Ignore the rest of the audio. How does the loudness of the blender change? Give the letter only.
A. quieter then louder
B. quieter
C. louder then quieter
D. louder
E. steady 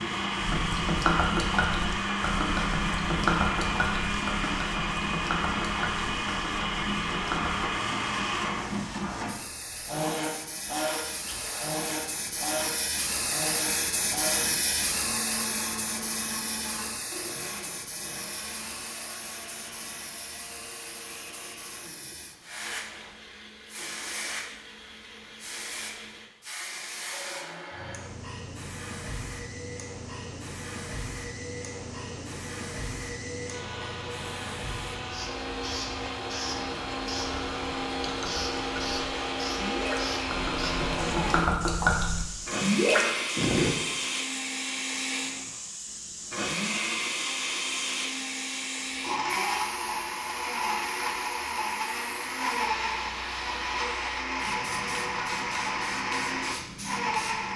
A.